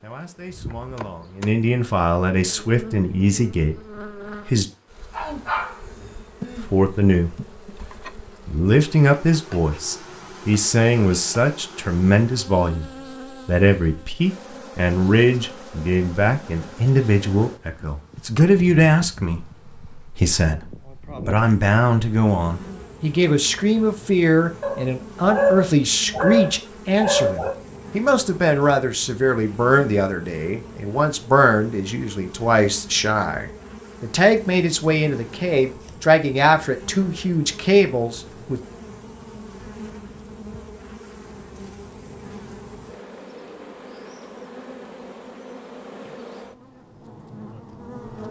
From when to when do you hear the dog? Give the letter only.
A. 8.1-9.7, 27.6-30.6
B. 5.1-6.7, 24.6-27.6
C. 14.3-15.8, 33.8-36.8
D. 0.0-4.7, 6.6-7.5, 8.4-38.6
B.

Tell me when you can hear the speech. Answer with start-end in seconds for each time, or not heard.
0.0-4.7, 6.6-7.5, 8.4-38.6.